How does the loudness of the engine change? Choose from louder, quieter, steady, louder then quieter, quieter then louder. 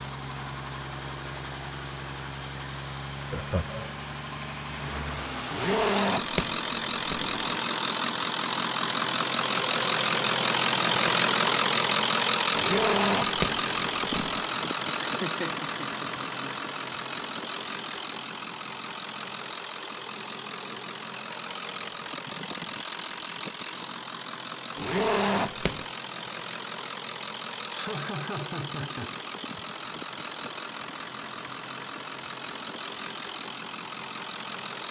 louder then quieter.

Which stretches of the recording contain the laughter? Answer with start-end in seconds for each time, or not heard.
3.3-4.0, 15.0-16.2, 27.7-29.6.